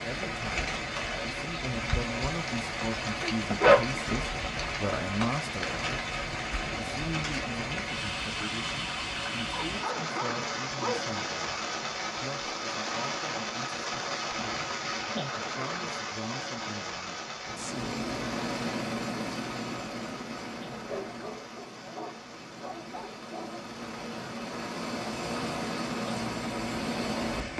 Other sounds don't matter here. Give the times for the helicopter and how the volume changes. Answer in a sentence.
The helicopter can be heard from 17.4 to 27.5 s, getting quieter then louder.